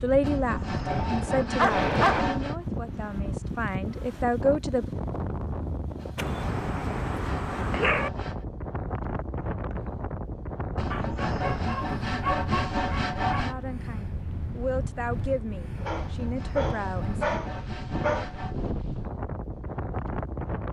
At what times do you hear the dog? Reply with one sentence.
The dog can be heard from 0.8 to 2.2 s, from 6.2 to 8.1 s, from 10.9 to 13.7 s and from 15.8 to 18.4 s.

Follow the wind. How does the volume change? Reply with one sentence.
The loudness of the wind stays about the same.